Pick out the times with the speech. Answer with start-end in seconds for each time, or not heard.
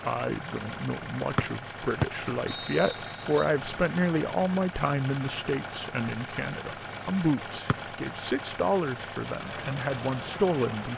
0.0-10.9.